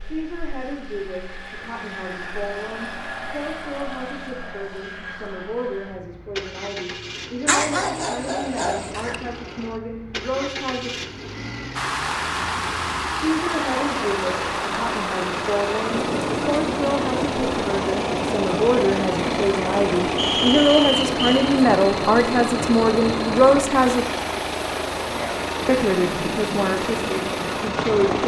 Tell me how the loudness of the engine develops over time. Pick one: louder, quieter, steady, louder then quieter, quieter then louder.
louder.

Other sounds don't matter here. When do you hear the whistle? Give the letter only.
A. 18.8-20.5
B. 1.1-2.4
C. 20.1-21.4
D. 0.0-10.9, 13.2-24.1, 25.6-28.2
C.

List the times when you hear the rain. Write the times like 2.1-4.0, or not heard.
11.8-28.2.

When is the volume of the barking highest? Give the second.
8 s.